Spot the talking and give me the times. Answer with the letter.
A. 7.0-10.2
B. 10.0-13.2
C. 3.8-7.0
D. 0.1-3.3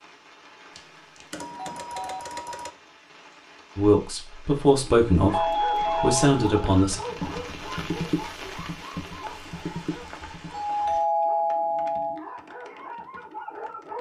C.